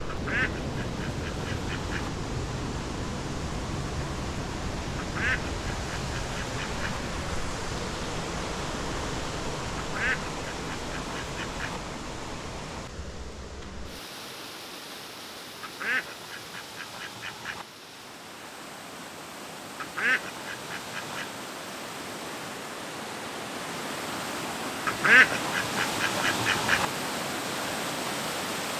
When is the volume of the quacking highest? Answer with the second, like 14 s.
25 s.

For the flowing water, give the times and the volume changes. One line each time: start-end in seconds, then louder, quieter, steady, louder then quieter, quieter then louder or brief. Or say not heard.
0.0-28.7 quieter then louder.